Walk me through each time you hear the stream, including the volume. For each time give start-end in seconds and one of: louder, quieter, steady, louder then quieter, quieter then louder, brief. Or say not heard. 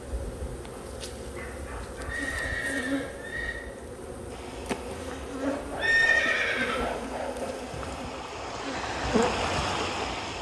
4.2-10.3 louder.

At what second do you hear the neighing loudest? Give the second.
6 s.